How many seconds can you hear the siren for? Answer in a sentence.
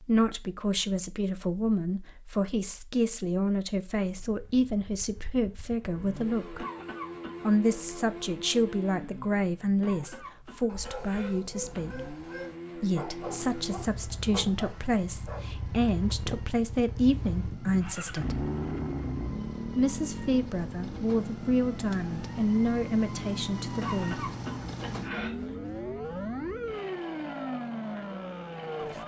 The siren can be heard for 16 seconds in total.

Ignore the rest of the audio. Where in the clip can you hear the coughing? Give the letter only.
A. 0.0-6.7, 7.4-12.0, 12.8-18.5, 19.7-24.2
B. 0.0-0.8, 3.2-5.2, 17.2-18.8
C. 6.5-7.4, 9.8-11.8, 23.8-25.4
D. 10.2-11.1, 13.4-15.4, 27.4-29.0
C.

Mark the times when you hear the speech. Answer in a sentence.
The speech can be heard from 0.0 to 6.7 s, from 7.4 to 12.0 s, from 12.8 to 18.5 s and from 19.7 to 24.2 s.